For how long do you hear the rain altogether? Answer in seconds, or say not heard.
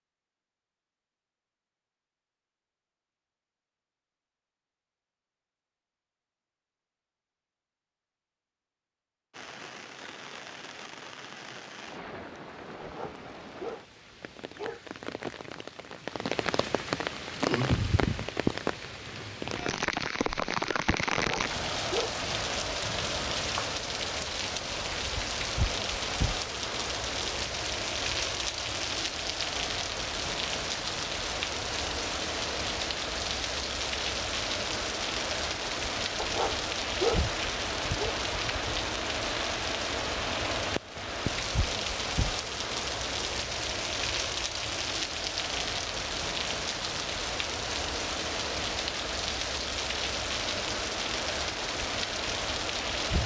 44 s.